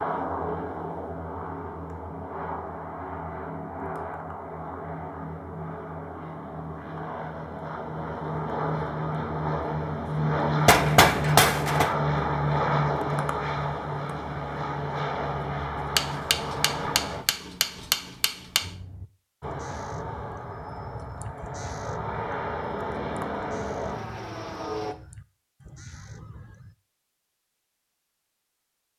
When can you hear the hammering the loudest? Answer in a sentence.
The volume of the hammering peaks at 11 seconds.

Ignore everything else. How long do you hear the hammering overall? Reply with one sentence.
The hammering can be heard for 4 seconds in total.